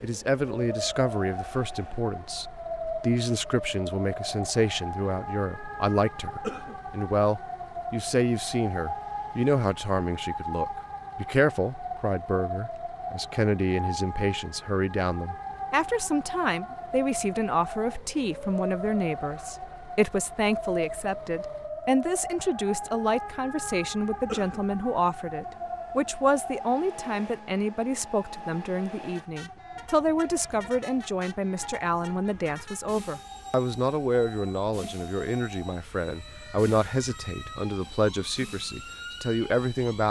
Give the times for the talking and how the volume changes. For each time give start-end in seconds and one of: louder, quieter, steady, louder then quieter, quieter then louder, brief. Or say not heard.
0.0-40.0 steady.